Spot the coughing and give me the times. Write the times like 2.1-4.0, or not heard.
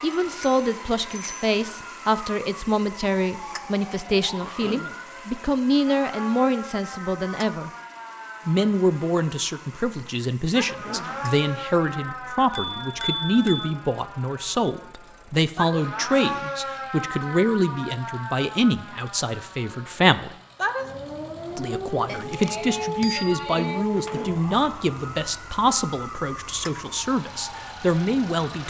4.4-5.0, 10.7-11.2, 23.9-24.4.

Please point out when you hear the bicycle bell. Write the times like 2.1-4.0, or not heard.
0.4-1.4, 12.6-13.7, 22.1-23.9.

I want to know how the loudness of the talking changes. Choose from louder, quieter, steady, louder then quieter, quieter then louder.
steady.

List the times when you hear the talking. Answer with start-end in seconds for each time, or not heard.
0.0-7.7, 8.4-20.4, 21.6-28.6.